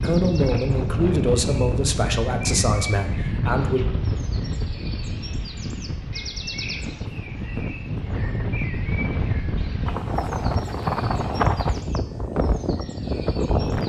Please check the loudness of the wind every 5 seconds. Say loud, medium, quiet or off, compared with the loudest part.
loud, medium, loud.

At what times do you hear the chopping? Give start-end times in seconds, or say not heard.
not heard.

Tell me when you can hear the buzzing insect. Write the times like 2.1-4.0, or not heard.
not heard.